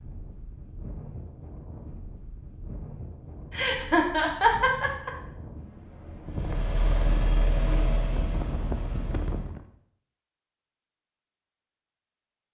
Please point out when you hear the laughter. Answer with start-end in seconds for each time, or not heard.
3.5-5.1.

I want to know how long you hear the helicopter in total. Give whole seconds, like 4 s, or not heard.
3 s.